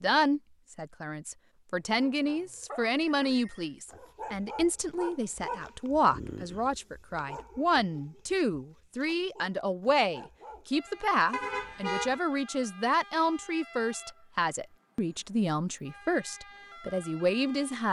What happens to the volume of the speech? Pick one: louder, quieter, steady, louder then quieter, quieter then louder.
steady.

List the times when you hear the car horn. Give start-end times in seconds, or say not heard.
11.3-12.2.